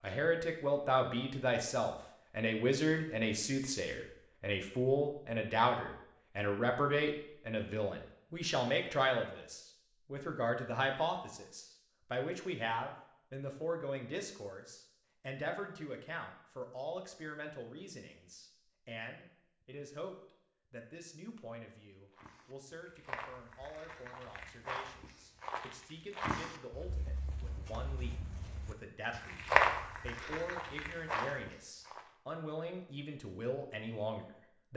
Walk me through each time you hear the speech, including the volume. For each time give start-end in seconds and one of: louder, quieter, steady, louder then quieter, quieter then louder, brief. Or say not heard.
0.0-34.7 quieter then louder.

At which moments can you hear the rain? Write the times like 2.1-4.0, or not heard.
not heard.